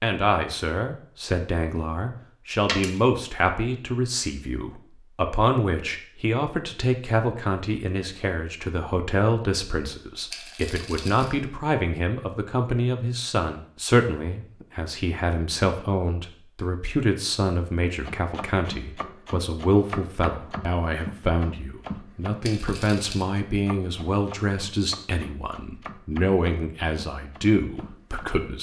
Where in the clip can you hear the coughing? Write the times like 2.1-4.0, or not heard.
not heard.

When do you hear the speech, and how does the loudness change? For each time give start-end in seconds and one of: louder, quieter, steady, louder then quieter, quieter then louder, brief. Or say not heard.
0.0-28.5 steady.